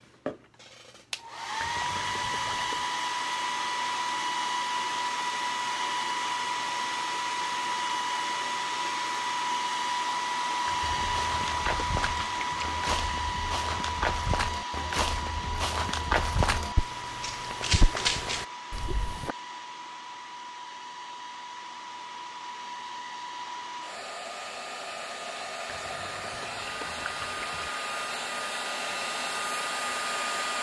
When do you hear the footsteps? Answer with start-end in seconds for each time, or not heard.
10.8-19.4.